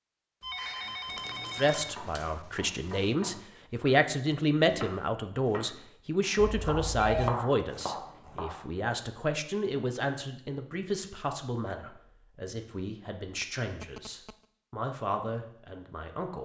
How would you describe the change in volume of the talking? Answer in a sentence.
The loudness of the talking goes down.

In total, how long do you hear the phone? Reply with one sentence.
The phone can be heard for 5 seconds in total.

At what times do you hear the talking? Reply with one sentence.
The talking can be heard from 1.6 to 16.4 s.